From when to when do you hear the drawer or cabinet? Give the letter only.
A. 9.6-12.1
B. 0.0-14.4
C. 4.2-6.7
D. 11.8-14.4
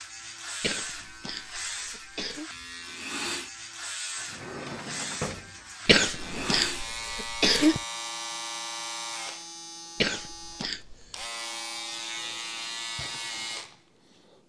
C.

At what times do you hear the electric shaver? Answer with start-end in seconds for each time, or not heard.
0.0-14.4.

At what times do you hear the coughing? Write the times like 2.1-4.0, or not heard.
0.6-2.5, 5.8-7.8, 10.0-11.2.